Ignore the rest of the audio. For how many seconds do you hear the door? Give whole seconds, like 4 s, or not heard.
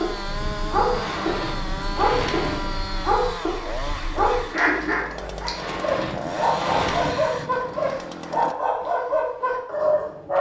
4 s.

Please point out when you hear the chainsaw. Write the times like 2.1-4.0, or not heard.
0.0-8.6.